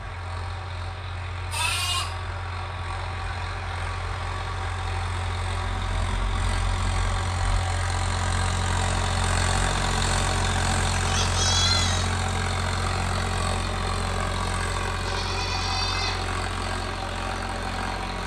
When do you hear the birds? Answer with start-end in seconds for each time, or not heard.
not heard.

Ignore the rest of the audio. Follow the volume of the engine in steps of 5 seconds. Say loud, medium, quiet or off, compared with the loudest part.
medium, loud, loud, loud.